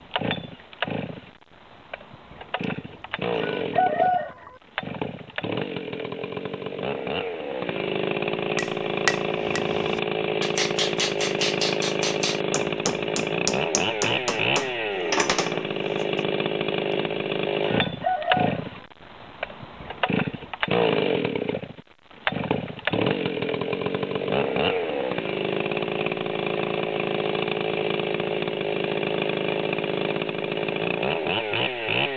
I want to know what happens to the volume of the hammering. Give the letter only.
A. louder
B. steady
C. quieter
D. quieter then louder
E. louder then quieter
B.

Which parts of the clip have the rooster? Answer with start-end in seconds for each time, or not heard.
2.6-4.5, 17.6-18.8.